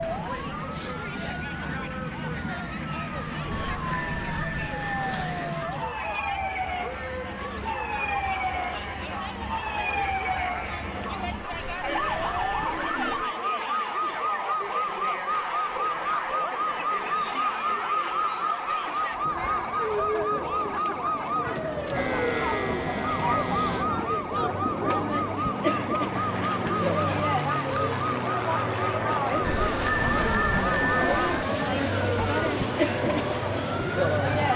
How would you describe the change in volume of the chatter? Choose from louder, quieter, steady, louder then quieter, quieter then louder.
louder.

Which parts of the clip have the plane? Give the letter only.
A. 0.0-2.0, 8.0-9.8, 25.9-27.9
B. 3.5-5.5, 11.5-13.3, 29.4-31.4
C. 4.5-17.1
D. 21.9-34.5
D.